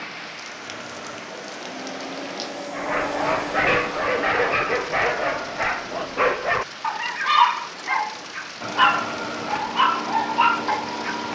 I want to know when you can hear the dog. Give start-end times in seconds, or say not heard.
2.7-11.2.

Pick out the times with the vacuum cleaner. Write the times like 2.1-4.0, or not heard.
0.0-6.3, 8.6-11.3.